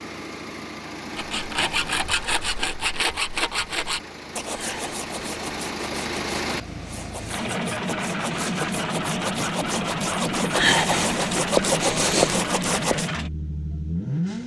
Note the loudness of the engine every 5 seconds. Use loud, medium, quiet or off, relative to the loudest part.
medium, loud, loud.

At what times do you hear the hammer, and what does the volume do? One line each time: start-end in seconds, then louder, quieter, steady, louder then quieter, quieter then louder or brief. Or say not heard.
not heard.